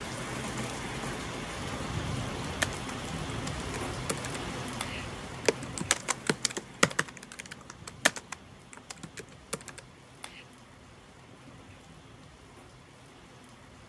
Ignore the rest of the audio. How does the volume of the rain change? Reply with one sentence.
The volume of the rain goes down.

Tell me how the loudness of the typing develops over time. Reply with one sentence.
The loudness of the typing goes up, then down.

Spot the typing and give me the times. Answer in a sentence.
You can hear the typing from 2.4 to 10.4 s.